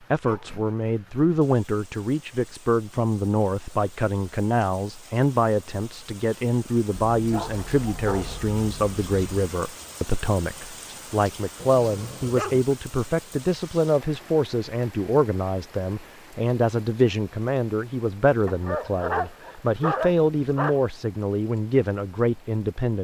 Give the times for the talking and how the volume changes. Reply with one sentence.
You can hear the talking from 0.1 to 22.9 s, at a steady volume.